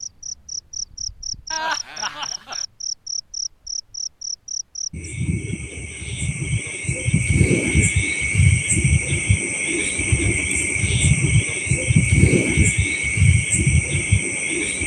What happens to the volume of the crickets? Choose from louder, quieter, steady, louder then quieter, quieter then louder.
louder.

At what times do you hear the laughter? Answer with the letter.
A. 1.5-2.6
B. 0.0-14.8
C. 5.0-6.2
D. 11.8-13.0
A.